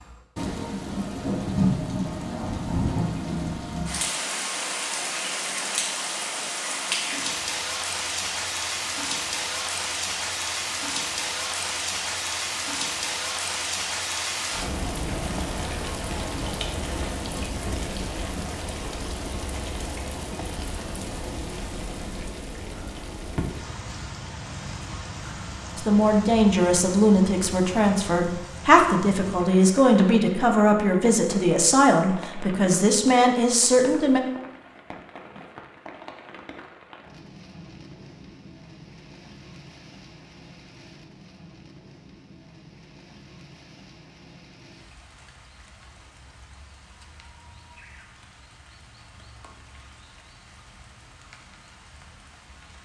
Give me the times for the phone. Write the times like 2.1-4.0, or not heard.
not heard.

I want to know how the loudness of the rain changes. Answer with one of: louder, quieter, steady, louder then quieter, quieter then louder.
quieter.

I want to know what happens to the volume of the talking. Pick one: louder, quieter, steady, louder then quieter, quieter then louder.
steady.